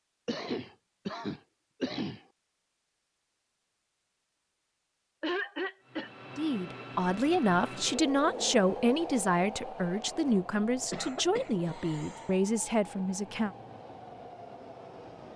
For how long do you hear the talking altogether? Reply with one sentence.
The talking can be heard for 7 seconds in total.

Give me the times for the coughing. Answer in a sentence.
The coughing can be heard from 0.2 to 2.2 s, from 5.2 to 6.1 s and from 10.8 to 12.3 s.